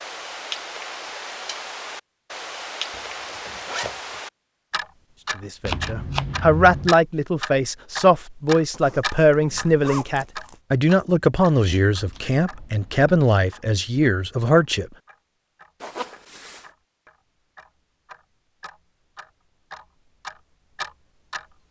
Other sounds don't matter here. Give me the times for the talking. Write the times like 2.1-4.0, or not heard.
5.3-14.9.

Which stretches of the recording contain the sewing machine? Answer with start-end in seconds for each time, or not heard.
not heard.